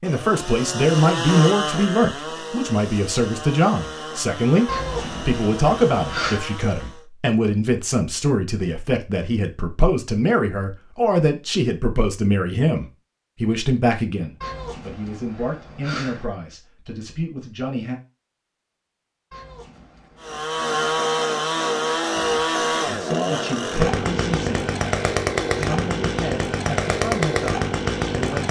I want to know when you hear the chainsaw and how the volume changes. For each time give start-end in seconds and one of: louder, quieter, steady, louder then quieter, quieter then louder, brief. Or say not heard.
0.0-7.0 quieter
20.2-28.4 steady.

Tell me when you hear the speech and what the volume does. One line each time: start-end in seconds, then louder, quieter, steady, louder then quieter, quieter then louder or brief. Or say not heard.
0.0-17.9 quieter
22.1-24.4 brief
25.6-28.4 brief.